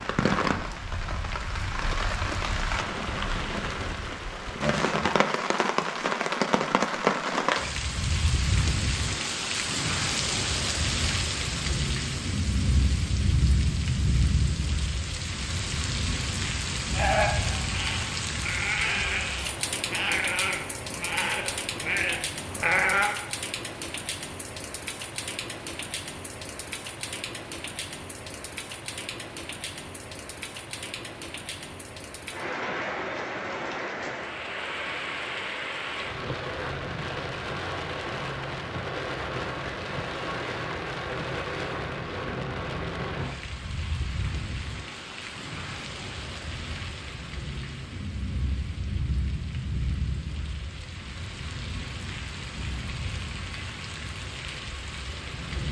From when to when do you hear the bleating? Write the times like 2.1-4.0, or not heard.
16.9-23.1.